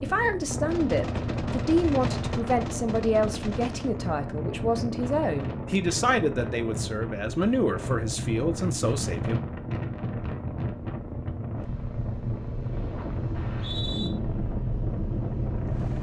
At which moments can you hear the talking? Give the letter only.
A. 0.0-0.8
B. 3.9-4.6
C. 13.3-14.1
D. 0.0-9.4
D.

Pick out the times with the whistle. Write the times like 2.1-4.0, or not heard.
13.3-14.1.